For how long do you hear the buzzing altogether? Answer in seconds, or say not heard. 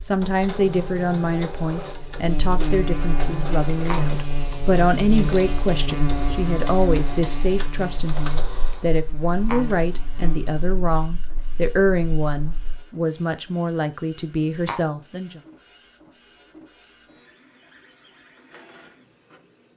13 s.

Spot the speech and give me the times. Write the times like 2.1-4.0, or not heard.
0.0-15.4.